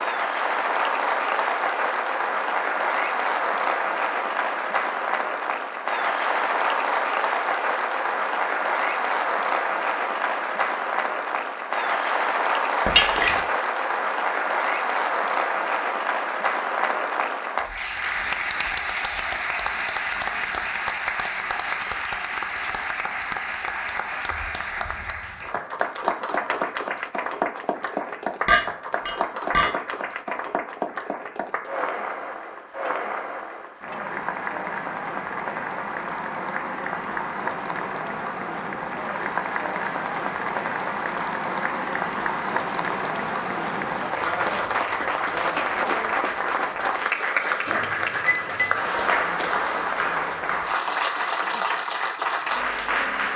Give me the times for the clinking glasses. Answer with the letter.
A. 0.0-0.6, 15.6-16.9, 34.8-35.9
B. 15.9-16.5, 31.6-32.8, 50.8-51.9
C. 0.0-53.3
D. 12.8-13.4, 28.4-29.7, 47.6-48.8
D.